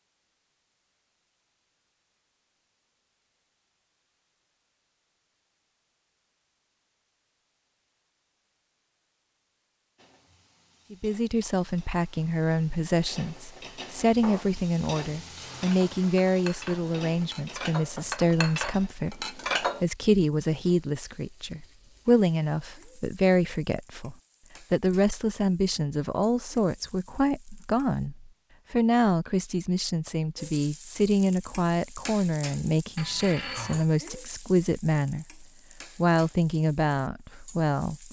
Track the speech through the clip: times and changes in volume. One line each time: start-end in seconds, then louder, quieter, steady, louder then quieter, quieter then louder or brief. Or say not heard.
10.9-38.0 steady.